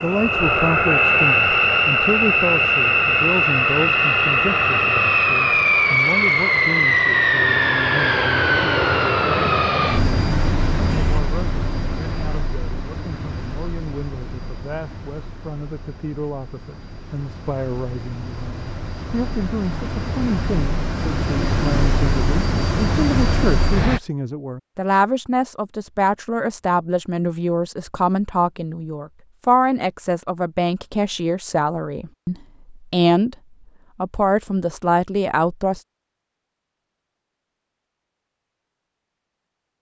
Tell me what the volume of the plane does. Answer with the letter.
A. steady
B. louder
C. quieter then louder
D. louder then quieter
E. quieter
C.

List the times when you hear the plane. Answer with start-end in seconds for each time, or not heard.
0.0-24.0.